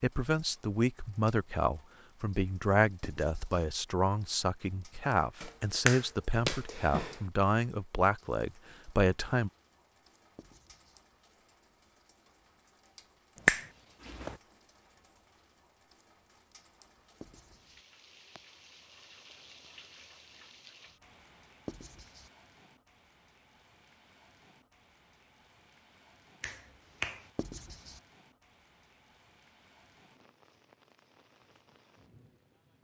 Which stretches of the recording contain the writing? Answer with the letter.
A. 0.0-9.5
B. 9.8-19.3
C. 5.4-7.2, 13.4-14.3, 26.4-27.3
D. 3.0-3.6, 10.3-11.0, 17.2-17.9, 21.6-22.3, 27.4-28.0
D.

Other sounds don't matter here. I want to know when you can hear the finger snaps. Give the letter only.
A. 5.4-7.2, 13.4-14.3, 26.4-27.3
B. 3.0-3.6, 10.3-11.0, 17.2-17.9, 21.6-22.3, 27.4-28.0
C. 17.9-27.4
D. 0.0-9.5
A.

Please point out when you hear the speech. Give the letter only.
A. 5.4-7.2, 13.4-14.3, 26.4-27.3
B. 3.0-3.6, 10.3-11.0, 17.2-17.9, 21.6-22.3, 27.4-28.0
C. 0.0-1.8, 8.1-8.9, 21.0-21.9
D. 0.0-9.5
D.